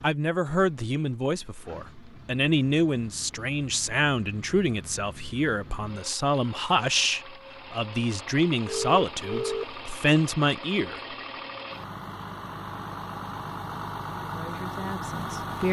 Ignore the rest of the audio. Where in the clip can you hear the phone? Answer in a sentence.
The phone can be heard from 8.7 to 9.8 s.